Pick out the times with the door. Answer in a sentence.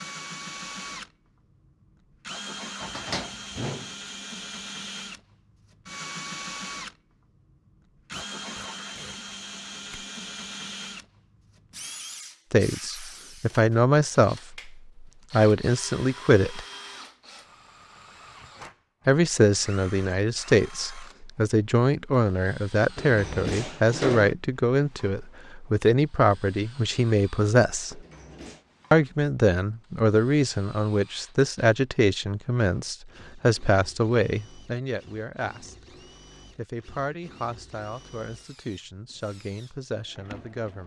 The door can be heard from 2.8 to 3.9 s, from 22.9 to 24.4 s and from 27.9 to 28.6 s.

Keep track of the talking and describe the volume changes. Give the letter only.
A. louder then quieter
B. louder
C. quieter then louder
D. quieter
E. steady
D.